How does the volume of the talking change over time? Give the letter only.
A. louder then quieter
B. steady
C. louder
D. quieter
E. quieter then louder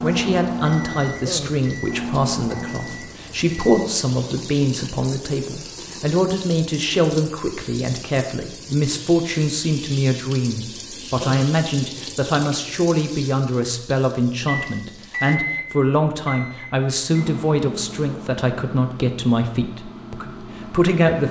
B.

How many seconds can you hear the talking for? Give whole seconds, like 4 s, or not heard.
21 s.